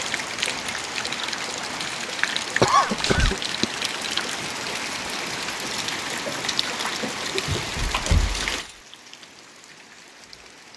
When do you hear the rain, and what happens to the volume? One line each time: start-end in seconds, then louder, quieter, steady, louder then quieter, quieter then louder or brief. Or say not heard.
0.0-10.7 quieter.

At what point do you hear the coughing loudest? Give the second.
3 s.